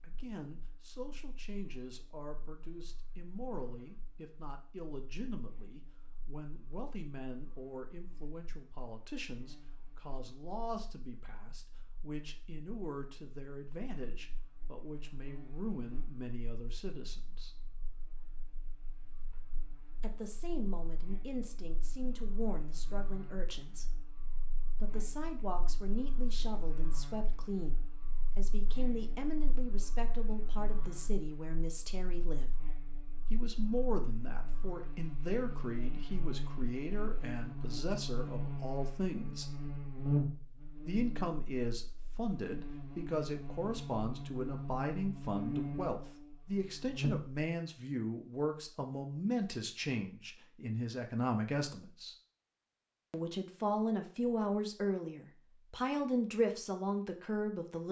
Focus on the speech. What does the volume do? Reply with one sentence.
The loudness of the speech goes up.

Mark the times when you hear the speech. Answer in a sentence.
The speech can be heard from 0.0 to 17.5 s, from 20.0 to 23.9 s, from 24.8 to 32.5 s, from 33.3 to 39.5 s, from 40.9 to 52.1 s and from 53.1 to 57.8 s.